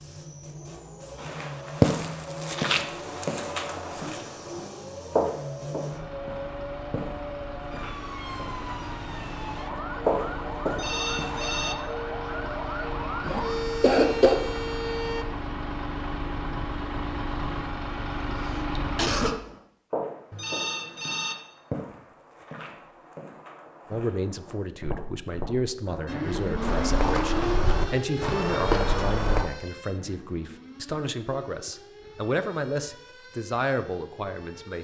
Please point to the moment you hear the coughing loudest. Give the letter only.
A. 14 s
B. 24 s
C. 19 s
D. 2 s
A.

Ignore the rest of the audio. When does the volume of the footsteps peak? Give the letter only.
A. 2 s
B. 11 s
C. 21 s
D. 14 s
A.